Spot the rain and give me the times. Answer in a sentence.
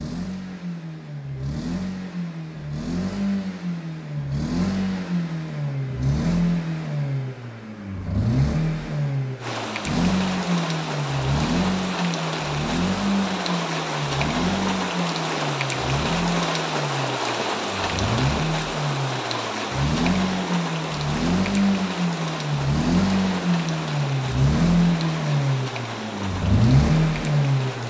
You can hear the rain from 9.4 to 27.8 s.